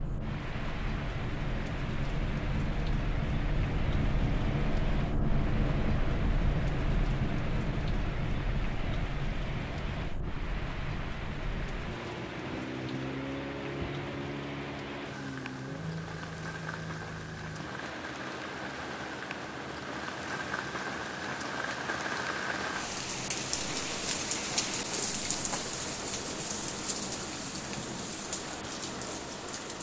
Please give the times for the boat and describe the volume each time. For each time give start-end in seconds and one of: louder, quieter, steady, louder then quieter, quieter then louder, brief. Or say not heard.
0.0-29.7 quieter.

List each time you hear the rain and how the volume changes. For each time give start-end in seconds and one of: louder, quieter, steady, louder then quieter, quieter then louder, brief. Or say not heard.
0.0-29.7 louder.